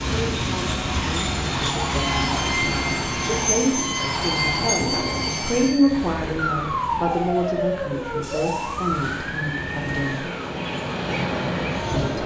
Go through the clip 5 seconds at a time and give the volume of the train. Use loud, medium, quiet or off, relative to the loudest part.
loud, medium, loud.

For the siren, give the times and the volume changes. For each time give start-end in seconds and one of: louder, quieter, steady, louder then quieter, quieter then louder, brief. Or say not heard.
1.6-10.5 steady.